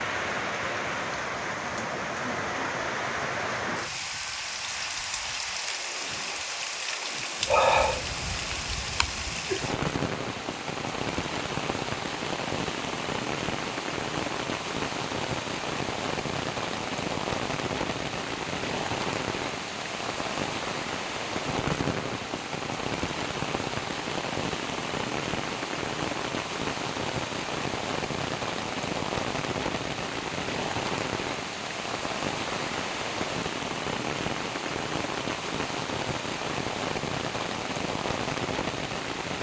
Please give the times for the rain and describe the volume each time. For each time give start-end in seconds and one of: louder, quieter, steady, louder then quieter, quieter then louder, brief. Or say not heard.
0.0-39.3 steady.